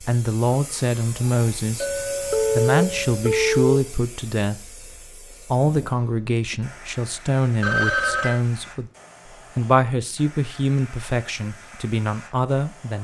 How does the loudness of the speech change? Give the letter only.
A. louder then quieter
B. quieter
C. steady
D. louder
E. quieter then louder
C.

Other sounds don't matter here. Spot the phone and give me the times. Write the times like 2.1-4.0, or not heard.
2.3-3.8, 7.6-8.4.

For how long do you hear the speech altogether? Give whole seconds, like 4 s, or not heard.
12 s.